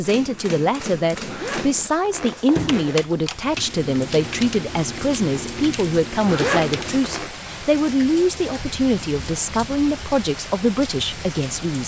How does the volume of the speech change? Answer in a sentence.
The loudness of the speech stays about the same.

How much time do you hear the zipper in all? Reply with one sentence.
You can hear the zipper for 3 seconds altogether.